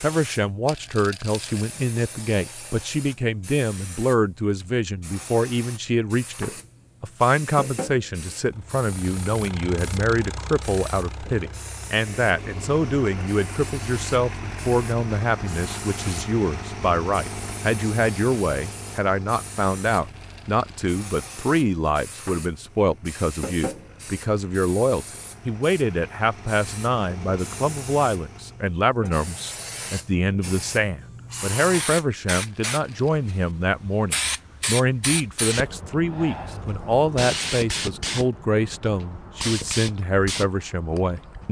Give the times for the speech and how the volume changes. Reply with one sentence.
You can hear the speech from 0.0 to 41.4 s, at a steady volume.